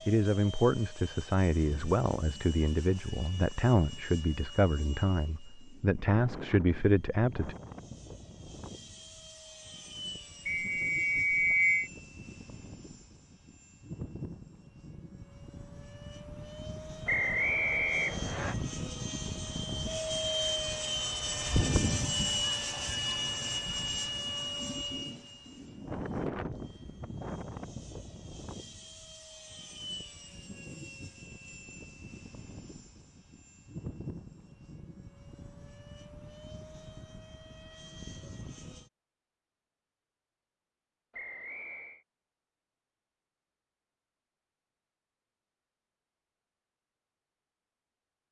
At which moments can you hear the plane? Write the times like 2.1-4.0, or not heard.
0.0-38.9.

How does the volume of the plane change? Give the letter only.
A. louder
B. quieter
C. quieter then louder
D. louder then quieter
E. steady
D.